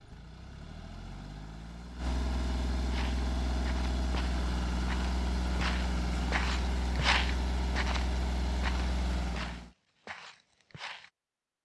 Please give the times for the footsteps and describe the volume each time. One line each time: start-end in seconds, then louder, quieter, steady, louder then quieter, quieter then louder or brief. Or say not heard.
2.9-11.1 louder then quieter.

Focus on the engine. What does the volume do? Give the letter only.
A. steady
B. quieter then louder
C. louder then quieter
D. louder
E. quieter
D.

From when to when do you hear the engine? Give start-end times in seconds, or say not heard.
0.0-9.7.